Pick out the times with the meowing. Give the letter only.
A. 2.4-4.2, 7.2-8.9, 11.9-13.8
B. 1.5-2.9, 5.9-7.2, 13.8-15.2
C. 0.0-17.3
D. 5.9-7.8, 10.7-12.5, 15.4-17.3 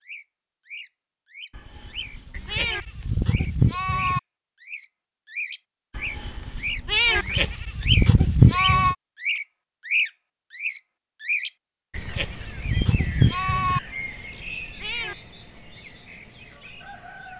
B.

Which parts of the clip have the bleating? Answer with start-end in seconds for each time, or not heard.
2.4-4.2, 7.2-8.9, 11.9-13.8.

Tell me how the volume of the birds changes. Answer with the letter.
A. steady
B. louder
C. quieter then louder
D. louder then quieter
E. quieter
D.